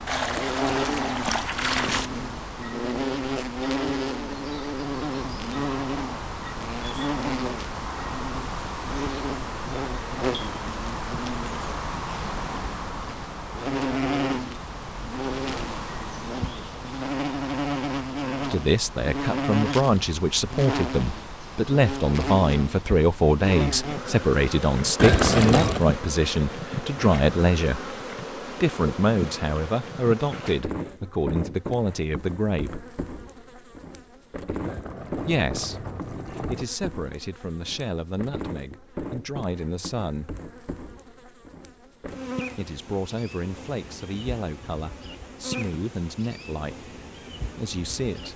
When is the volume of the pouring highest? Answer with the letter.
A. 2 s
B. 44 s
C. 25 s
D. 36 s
C.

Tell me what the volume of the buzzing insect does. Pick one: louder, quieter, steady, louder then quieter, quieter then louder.
quieter.